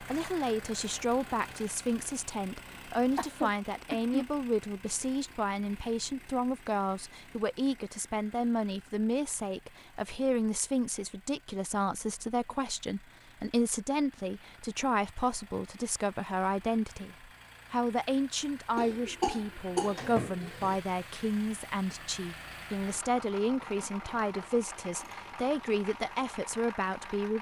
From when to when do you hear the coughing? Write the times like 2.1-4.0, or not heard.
3.1-4.3, 18.8-20.8.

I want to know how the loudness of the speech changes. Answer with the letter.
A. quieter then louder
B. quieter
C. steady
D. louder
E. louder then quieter
C.